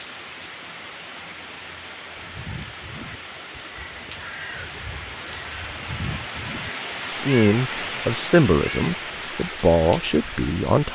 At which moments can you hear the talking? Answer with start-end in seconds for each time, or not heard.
7.2-10.8.